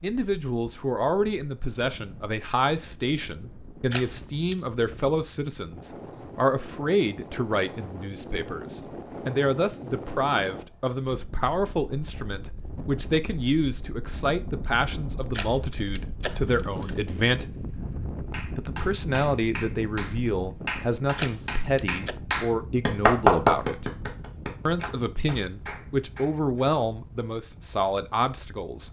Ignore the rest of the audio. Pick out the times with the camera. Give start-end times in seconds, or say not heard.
3.9-4.5, 15.3-17.4, 21.1-22.1.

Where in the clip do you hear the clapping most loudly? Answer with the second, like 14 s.
23 s.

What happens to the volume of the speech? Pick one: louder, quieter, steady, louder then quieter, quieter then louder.
steady.